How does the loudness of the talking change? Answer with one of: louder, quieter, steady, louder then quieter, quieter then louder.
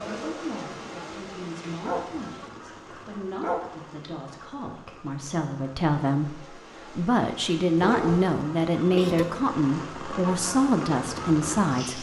louder.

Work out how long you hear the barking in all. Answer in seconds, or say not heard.
4 s.